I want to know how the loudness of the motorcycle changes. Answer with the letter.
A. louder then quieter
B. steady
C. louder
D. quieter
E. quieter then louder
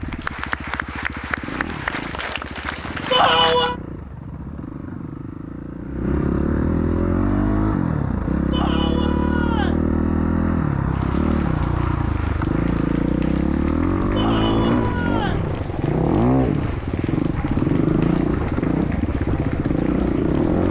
C.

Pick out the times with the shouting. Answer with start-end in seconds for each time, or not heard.
3.1-3.8, 8.5-9.8, 14.2-15.5.